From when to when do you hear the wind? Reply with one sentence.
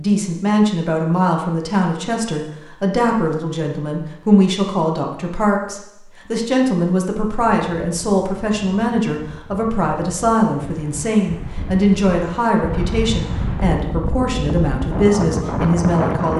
You can hear the wind from 7.2 to 16.3 s.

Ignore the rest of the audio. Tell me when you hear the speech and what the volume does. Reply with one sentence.
The speech can be heard from 0.0 to 16.3 s, at a steady volume.